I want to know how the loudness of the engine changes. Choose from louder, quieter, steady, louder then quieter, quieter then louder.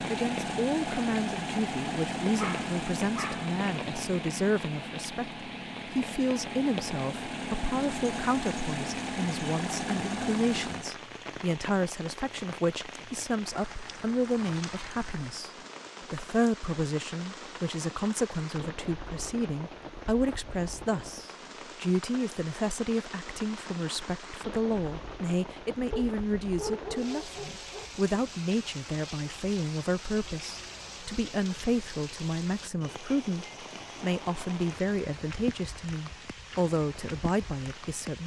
quieter then louder.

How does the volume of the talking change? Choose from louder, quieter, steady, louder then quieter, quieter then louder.
steady.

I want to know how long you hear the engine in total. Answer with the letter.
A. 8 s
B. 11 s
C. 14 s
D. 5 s
B.